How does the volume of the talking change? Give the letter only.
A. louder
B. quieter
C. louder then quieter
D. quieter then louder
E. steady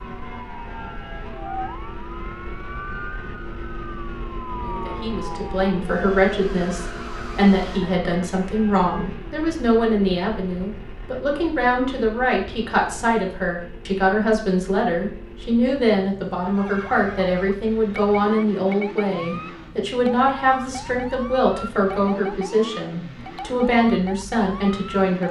E.